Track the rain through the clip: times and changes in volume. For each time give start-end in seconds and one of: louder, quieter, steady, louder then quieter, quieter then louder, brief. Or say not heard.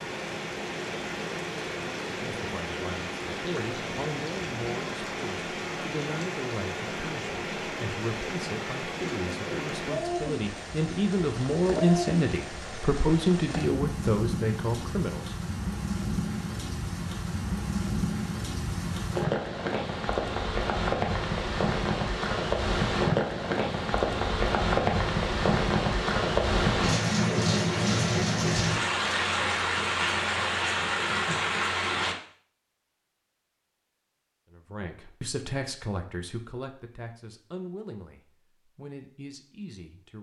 0.0-32.1 louder.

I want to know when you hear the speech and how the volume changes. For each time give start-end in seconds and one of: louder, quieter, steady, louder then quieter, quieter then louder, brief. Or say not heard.
2.1-15.3 louder
34.5-40.1 quieter.